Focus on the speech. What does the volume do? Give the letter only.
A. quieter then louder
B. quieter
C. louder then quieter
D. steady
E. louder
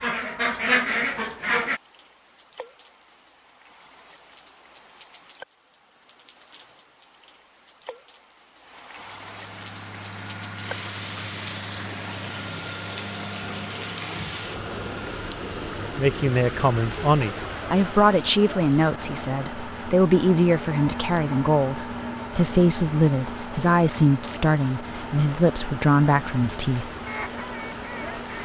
D.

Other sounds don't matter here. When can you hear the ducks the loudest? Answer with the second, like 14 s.
1 s.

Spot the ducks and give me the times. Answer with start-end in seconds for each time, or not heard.
0.0-1.8, 27.1-28.4.